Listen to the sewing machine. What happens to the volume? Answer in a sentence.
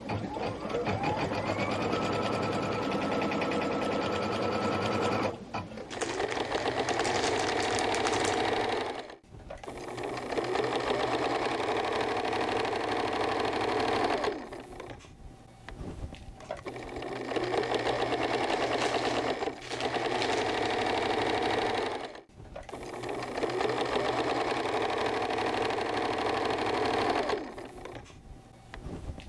The volume of the sewing machine stays about the same.